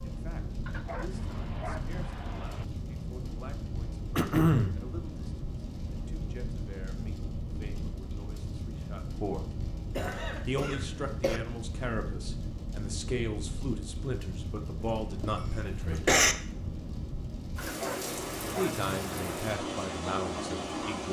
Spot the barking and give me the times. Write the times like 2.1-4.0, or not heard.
0.7-2.6, 17.6-19.5.